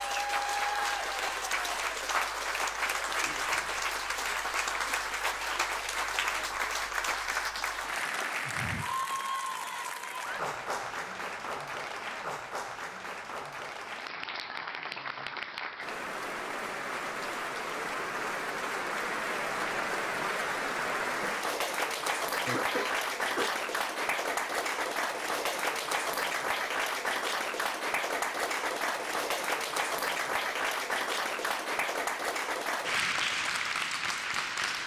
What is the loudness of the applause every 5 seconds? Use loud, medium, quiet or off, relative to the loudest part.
loud, loud, medium, loud, loud, loud, loud.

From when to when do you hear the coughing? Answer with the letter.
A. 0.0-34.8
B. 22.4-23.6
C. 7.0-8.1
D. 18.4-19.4
B.